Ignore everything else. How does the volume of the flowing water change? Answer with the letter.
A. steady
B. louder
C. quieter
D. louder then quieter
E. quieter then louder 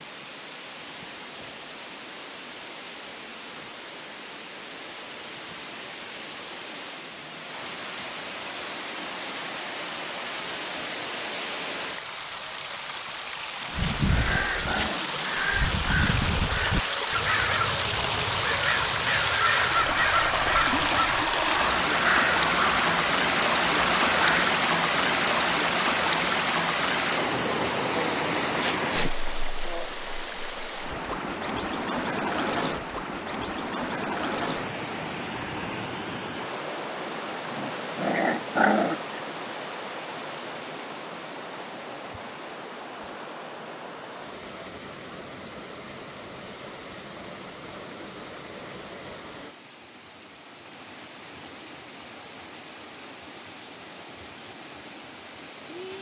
D.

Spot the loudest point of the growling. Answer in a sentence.
The loudest moment of the growling is at 39 seconds.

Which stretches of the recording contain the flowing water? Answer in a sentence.
You can hear the flowing water from 0.0 to 55.9 s.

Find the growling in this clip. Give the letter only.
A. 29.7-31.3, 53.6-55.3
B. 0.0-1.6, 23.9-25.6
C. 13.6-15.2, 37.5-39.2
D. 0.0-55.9
C.